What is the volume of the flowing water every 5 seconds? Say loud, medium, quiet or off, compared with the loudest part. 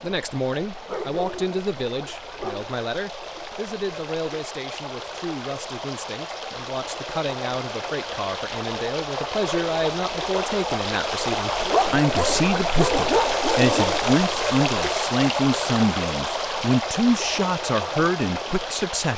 quiet, medium, loud, loud.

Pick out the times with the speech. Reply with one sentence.
The speech can be heard from 0.0 to 19.1 s.